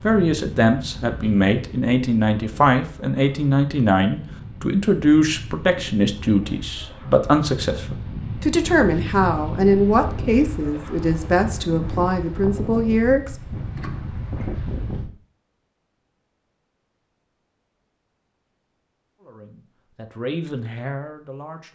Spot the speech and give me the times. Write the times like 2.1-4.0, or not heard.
0.0-13.3, 19.2-21.7.